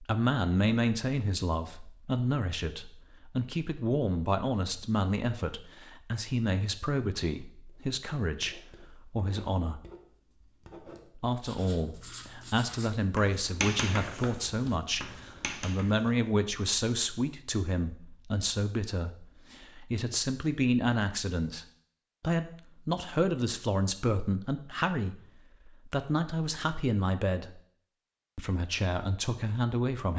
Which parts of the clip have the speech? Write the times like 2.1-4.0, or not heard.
0.0-9.8, 11.2-27.6, 28.4-30.1.